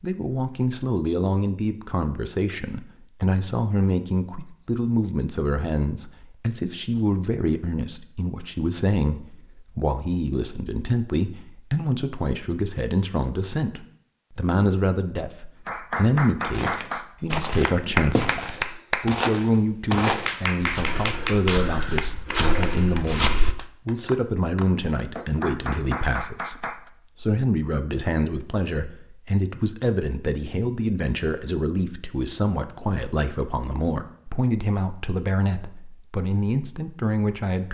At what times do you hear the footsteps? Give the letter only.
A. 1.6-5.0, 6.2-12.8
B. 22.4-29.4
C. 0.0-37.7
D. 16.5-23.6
D.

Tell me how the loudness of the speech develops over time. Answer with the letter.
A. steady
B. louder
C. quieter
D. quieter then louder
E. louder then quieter
A.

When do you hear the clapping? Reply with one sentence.
You can hear the clapping from 15.7 to 19.1 s and from 20.2 to 26.8 s.